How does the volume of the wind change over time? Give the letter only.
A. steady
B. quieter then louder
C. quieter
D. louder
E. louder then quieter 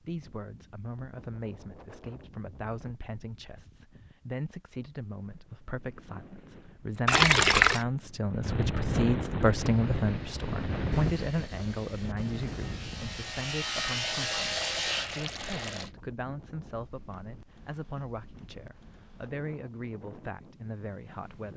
E.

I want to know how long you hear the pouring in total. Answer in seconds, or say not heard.
3 s.